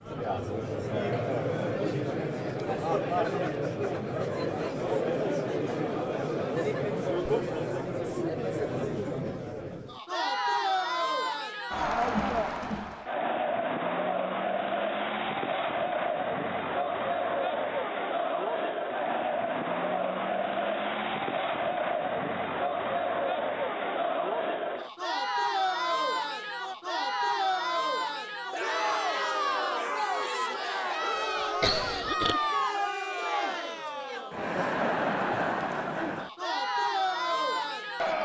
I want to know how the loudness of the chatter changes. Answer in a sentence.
The loudness of the chatter stays about the same.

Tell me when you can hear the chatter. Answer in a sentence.
You can hear the chatter from 0.0 to 38.2 s.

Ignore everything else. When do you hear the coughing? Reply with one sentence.
You can hear the coughing from 31.1 to 32.4 s.